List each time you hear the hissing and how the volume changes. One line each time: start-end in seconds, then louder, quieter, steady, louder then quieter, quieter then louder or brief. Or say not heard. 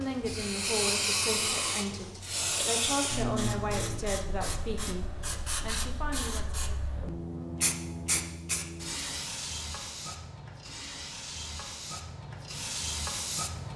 0.0-13.7 quieter.